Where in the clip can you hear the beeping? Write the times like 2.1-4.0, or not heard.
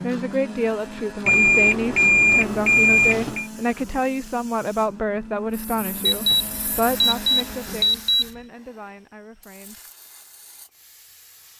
1.2-3.5, 6.0-8.2.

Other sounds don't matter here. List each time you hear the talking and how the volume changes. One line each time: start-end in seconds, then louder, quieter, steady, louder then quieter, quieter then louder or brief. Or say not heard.
0.0-9.8 quieter.